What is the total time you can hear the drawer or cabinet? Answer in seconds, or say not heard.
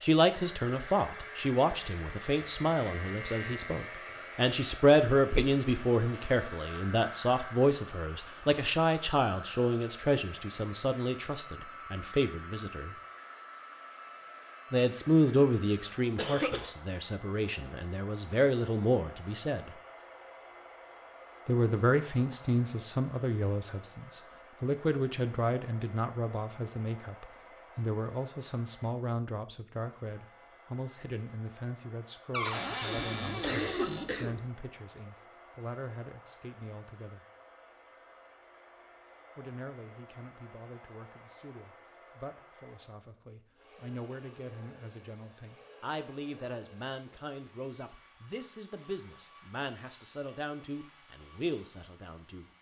2 s.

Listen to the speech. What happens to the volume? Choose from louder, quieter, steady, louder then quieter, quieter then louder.
quieter.